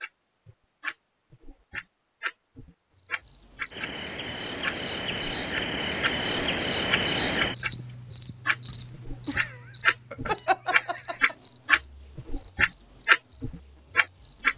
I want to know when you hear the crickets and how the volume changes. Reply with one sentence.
The crickets can be heard from 3.0 to 14.5 s, getting louder then quieter.